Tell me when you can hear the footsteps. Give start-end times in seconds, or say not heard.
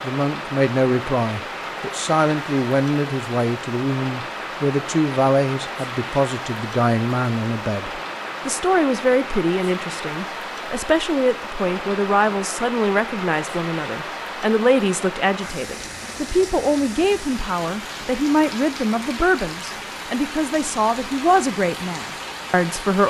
not heard.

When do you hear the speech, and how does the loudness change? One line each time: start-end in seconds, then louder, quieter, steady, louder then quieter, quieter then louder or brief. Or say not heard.
0.0-23.0 steady.